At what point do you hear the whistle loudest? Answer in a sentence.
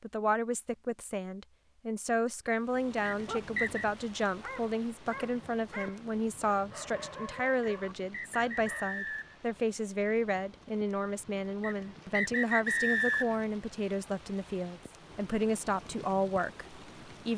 The loudest moment of the whistle is at 13 seconds.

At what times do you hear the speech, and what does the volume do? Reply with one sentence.
You can hear the speech from 0.0 to 17.3 s, at a steady volume.